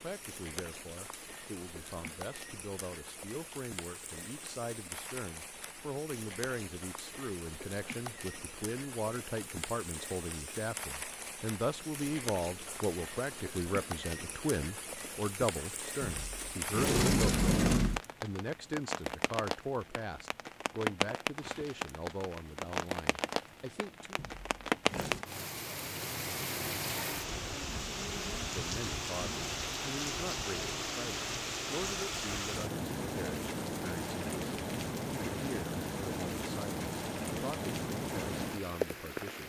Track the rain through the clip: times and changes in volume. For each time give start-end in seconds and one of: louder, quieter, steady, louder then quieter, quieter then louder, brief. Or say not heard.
0.0-39.4 louder.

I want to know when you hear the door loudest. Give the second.
18 s.